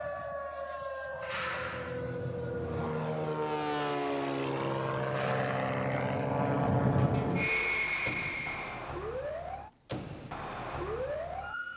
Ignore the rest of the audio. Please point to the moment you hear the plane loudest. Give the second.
7 s.